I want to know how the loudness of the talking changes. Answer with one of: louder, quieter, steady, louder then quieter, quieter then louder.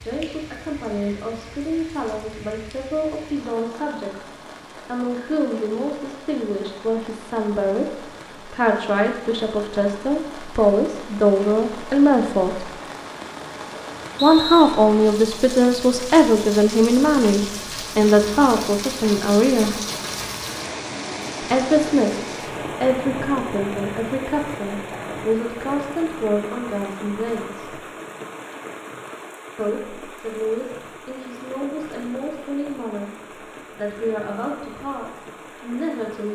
louder then quieter.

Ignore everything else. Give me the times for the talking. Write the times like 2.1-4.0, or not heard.
0.0-12.8, 14.2-19.9, 21.4-27.8, 29.6-36.3.